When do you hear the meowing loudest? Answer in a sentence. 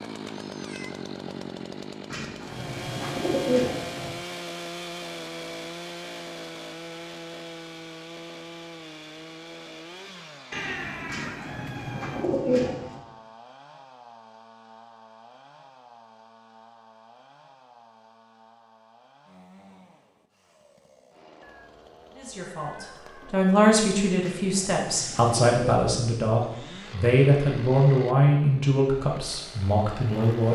The loudest moment of the meowing is at 11 seconds.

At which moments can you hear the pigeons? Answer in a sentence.
The pigeons can be heard from 2.1 to 4.2 s, from 11.1 to 13.0 s and from 24.2 to 25.8 s.